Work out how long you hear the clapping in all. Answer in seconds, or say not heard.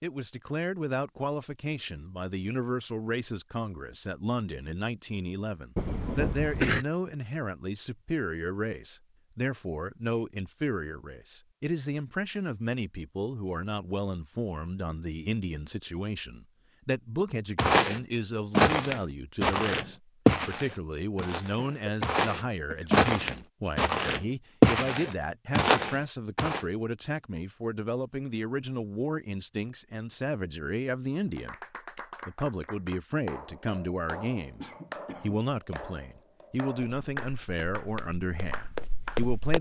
8 s.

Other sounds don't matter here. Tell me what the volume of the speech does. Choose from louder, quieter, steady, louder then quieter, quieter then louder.
steady.